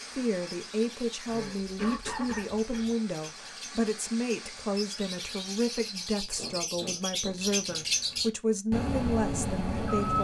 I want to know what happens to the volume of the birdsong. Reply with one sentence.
The volume of the birdsong goes up.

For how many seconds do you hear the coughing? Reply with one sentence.
You can hear the coughing for 3 seconds altogether.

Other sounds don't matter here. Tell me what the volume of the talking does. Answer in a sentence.
The volume of the talking stays about the same.